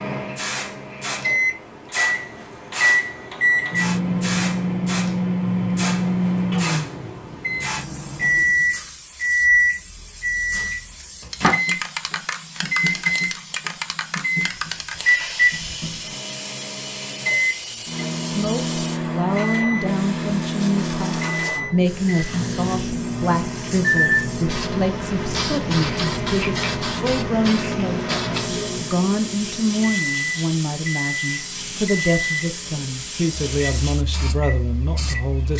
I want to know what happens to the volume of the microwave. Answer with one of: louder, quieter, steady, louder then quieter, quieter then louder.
quieter.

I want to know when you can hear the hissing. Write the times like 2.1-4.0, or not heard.
0.1-35.5.